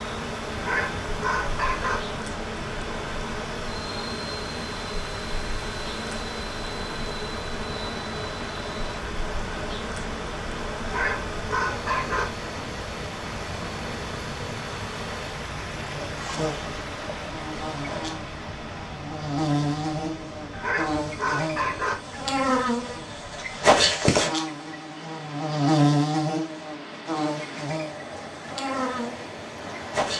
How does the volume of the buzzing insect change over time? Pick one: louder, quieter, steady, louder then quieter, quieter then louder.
louder.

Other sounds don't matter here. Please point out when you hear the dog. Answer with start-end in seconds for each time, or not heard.
0.6-2.0, 10.8-12.2, 20.5-21.9.